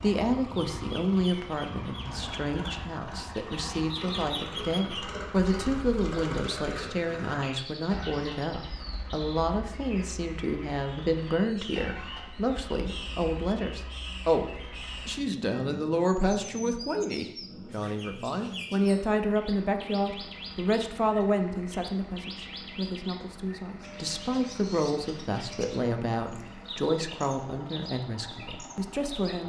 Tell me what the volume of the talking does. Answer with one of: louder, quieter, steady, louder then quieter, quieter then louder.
steady.